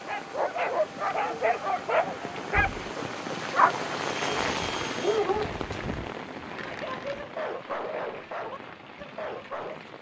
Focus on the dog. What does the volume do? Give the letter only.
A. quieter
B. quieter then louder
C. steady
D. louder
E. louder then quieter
A.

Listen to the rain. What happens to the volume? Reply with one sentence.
The volume of the rain goes up, then down.